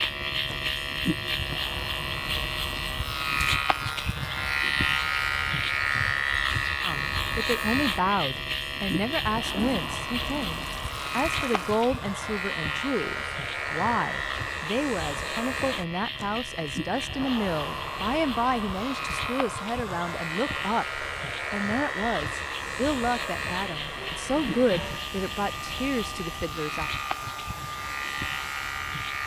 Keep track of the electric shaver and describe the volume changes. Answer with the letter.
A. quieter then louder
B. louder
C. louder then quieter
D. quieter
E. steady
D.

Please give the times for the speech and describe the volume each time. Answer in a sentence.
You can hear the speech from 6.8 to 26.9 s, at a steady volume.